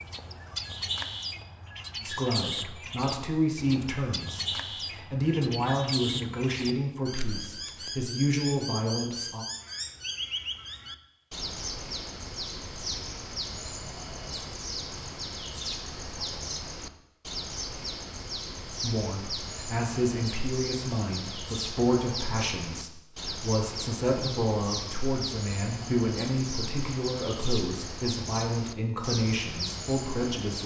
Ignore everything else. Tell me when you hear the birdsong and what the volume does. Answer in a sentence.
You can hear the birdsong from 0.0 to 30.6 s, at a steady volume.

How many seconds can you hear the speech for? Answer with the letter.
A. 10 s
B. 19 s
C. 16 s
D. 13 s
B.